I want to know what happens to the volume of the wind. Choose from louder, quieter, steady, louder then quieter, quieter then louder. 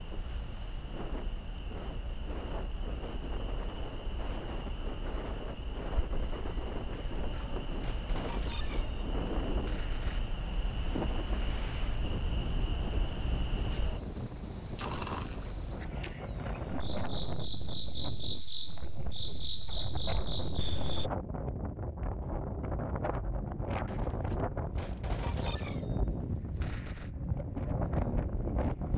louder.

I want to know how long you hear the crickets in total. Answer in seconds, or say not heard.
21 s.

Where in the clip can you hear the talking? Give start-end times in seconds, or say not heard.
not heard.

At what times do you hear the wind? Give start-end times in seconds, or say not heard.
0.0-28.9.